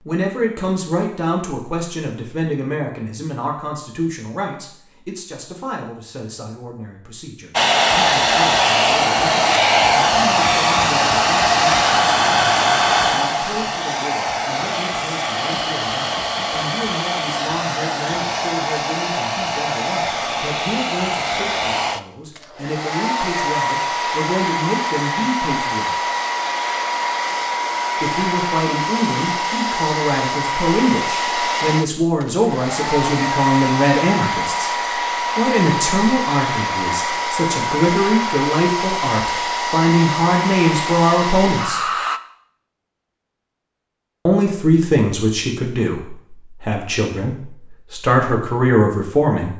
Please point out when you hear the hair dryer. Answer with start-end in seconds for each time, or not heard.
7.5-42.2.